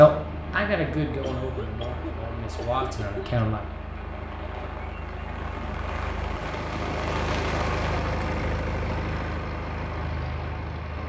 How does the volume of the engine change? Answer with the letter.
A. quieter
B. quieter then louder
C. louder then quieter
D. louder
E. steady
D.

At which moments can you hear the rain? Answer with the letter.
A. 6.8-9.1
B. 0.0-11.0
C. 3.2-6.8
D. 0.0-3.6
B.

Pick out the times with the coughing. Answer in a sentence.
The coughing can be heard from 1.2 to 3.5 s.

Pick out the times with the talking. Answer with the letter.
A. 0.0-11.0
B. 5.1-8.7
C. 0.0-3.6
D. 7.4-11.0
C.